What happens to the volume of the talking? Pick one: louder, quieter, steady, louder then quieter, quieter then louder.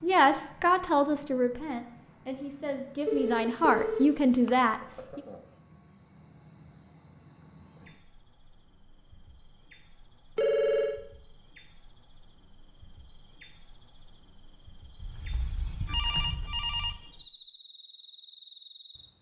quieter then louder.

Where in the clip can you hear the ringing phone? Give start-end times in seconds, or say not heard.
3.0-4.5, 10.3-11.0, 15.0-16.9.